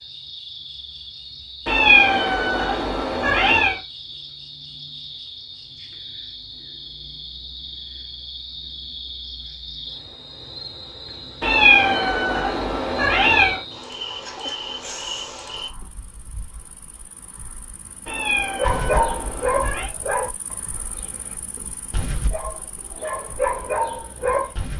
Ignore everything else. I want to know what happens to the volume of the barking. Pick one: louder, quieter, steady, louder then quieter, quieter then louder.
quieter then louder.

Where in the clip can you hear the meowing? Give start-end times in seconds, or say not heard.
1.6-3.8, 11.4-13.6, 18.1-19.9.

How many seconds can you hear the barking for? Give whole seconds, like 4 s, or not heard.
6 s.